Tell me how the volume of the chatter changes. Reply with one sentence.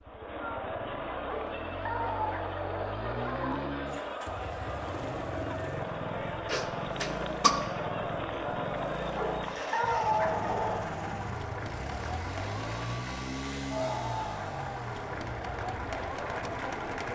The loudness of the chatter stays about the same.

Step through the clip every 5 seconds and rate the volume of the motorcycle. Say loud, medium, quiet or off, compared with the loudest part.
loud, loud, loud, medium.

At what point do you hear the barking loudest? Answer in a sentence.
The volume of the barking peaks at 10 seconds.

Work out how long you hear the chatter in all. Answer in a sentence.
The chatter can be heard for 17 seconds in total.